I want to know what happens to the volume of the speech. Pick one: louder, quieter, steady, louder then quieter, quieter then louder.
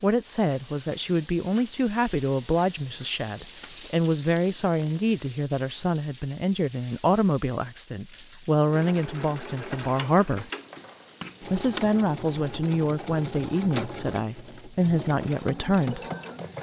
steady.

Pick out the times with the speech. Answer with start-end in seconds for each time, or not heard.
0.0-10.4, 11.4-16.0.